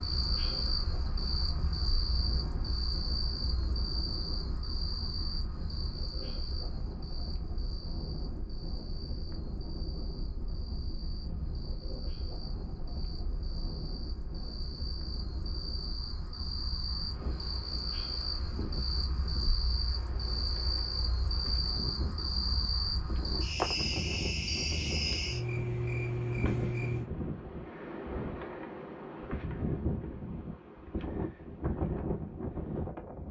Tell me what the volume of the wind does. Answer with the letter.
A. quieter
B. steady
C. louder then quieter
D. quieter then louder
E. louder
E.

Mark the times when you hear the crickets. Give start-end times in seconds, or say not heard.
0.0-27.1.